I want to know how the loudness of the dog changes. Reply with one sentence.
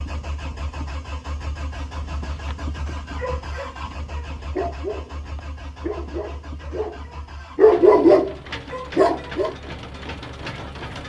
The volume of the dog goes up.